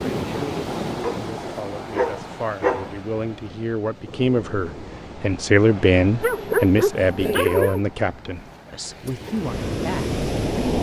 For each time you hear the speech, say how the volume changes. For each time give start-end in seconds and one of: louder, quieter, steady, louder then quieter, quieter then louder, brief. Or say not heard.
0.2-10.7 louder then quieter.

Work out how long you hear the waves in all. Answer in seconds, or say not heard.
11 s.